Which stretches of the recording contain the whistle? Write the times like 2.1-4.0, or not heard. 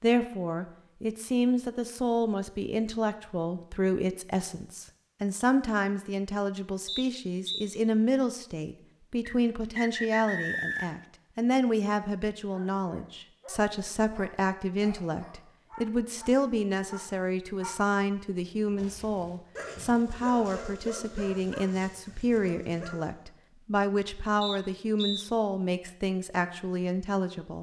6.8-7.7, 9.2-11.1, 24.4-25.2.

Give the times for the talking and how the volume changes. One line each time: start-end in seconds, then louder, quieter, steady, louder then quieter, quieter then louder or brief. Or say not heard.
0.0-27.5 steady.